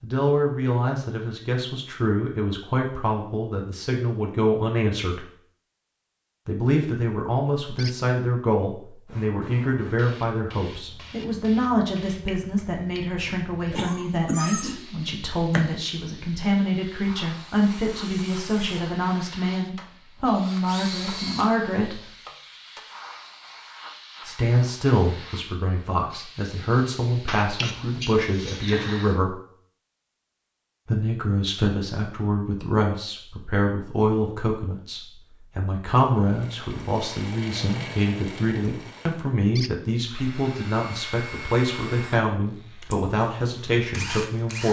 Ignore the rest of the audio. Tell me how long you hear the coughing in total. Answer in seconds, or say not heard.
4 s.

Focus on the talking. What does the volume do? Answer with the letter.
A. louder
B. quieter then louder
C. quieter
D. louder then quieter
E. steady
E.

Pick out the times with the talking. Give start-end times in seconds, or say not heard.
0.0-5.2, 6.5-22.1, 24.2-29.4, 30.9-44.6.